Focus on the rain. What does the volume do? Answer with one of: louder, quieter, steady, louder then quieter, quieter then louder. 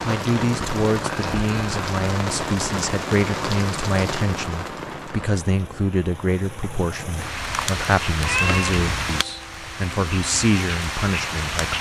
quieter then louder.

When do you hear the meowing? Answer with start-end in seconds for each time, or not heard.
8.2-9.1.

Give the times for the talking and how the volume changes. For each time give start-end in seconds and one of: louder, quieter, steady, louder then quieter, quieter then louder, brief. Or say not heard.
0.0-11.7 steady.